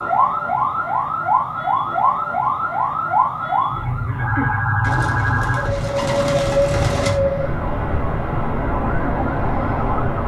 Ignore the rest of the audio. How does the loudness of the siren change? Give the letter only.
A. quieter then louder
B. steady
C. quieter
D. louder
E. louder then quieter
B.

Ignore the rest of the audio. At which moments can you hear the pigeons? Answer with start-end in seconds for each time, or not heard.
4.8-7.2.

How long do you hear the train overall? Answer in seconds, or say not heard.
not heard.